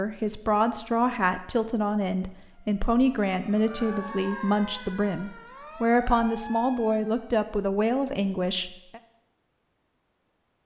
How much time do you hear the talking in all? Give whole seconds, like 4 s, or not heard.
9 s.